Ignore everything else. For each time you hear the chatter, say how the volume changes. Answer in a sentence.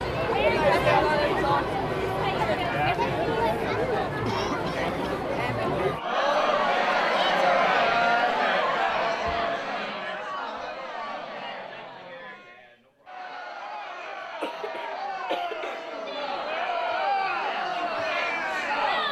The chatter can be heard from 0.0 to 19.0 s, getting quieter then louder.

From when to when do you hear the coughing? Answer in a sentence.
You can hear the coughing from 4.2 to 5.0 s and from 14.1 to 15.8 s.